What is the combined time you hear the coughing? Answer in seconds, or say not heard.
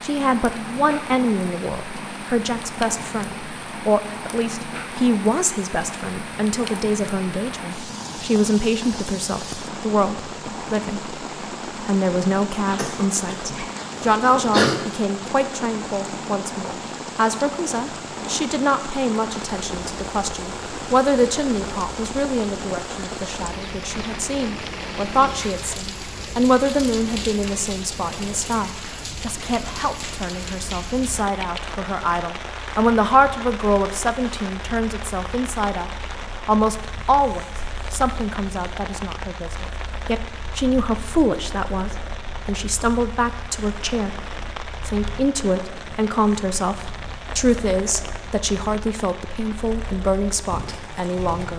2 s.